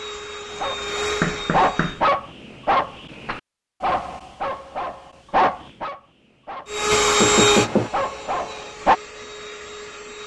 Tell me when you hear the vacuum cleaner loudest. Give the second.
7 s.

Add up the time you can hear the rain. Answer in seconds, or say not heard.
not heard.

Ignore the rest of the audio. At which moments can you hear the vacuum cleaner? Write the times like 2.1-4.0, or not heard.
0.0-2.0, 6.7-10.2.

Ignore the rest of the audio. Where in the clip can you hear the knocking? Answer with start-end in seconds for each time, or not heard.
1.2-2.0, 7.2-7.9.